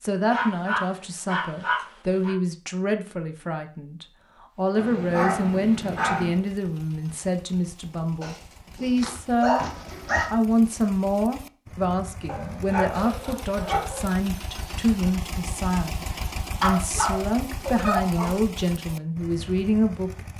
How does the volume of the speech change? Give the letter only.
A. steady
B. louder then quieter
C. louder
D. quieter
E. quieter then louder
A.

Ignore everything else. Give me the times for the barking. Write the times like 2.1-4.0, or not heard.
0.3-2.4, 4.8-6.4, 8.2-10.2, 12.2-14.1, 16.6-18.4.